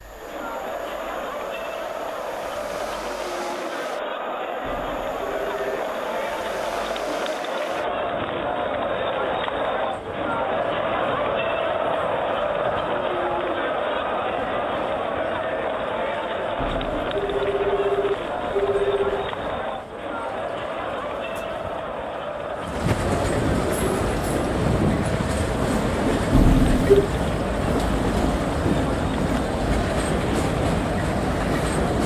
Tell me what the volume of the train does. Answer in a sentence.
The volume of the train goes up.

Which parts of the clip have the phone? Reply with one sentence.
The phone can be heard from 4.6 to 5.8 s, from 16.6 to 19.3 s and from 26.3 to 27.1 s.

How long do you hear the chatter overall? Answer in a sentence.
You can hear the chatter for 32 seconds altogether.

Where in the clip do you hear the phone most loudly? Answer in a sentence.
The volume of the phone peaks at 27 seconds.